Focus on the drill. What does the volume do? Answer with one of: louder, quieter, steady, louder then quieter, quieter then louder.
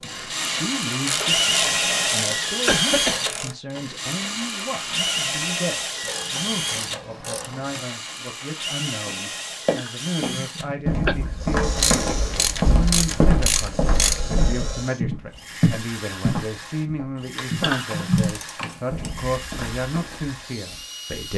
quieter.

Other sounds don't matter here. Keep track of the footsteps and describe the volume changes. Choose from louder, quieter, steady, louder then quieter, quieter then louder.
quieter.